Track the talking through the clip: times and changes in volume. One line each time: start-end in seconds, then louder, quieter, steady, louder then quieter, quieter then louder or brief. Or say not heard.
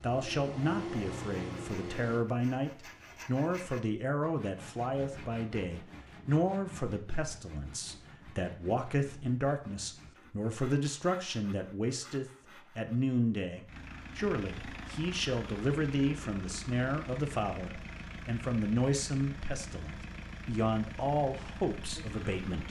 0.0-22.6 steady.